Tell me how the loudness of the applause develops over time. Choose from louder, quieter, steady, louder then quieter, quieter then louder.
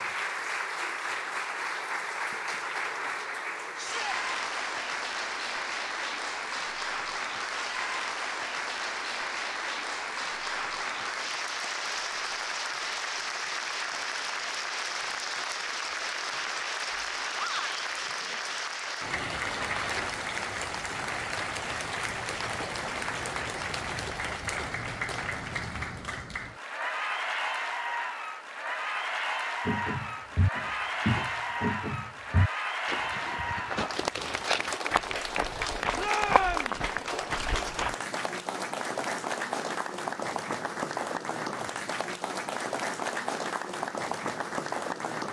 steady.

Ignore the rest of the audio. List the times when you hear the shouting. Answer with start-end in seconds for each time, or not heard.
3.8-4.2, 17.4-17.9, 36.0-36.8.